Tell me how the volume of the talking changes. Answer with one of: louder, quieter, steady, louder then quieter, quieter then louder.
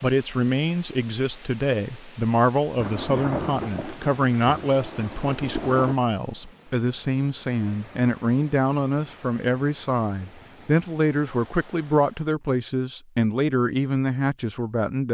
steady.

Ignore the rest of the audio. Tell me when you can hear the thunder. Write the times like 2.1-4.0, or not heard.
2.8-6.0.